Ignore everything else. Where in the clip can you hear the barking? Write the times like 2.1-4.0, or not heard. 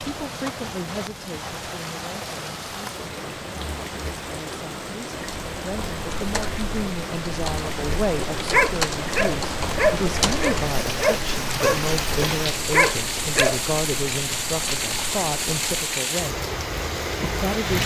8.3-13.6.